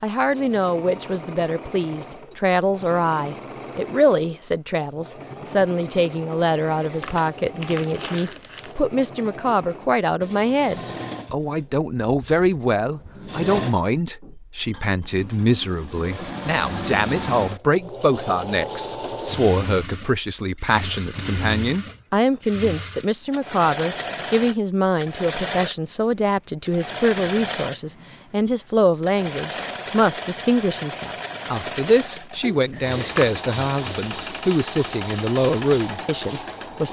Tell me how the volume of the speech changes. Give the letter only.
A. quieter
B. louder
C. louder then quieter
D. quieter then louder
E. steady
E.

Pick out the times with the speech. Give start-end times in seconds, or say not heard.
0.0-36.8.